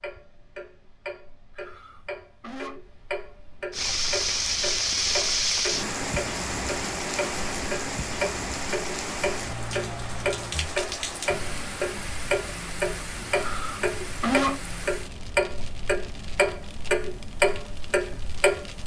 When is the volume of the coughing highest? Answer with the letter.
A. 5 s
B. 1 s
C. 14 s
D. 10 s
C.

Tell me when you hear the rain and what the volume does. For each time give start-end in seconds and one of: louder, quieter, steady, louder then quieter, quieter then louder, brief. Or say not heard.
3.7-18.8 quieter.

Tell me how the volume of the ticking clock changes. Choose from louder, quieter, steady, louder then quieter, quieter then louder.
louder.